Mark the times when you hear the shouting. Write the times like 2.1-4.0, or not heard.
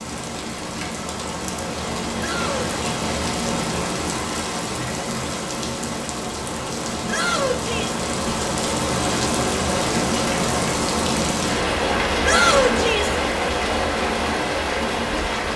2.1-3.0, 7.0-8.0, 12.2-13.2.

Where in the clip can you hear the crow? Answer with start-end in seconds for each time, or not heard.
not heard.